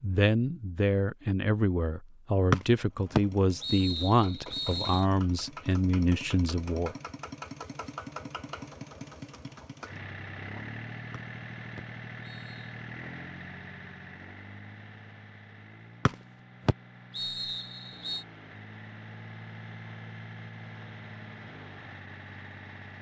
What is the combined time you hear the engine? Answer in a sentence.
You can hear the engine for 20 seconds altogether.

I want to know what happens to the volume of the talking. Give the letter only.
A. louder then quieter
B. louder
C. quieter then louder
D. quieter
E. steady
E.